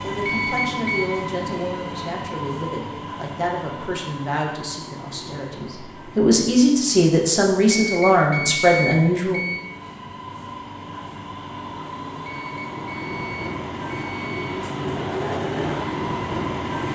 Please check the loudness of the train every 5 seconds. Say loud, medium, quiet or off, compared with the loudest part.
medium, quiet, medium, loud.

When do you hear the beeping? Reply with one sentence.
You can hear the beeping from 0.2 to 1.1 s, from 7.8 to 9.7 s and from 12.2 to 14.6 s.